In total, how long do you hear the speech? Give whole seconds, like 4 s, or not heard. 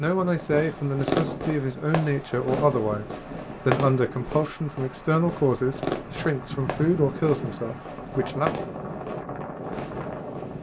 8 s.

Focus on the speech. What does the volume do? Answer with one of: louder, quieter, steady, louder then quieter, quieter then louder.
steady.